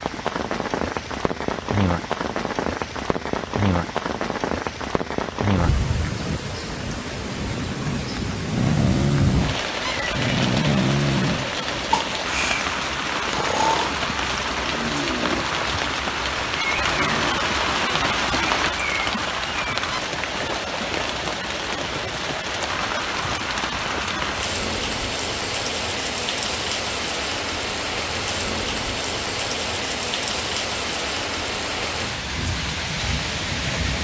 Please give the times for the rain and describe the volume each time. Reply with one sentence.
The rain can be heard from 0.0 to 33.9 s, at a steady volume.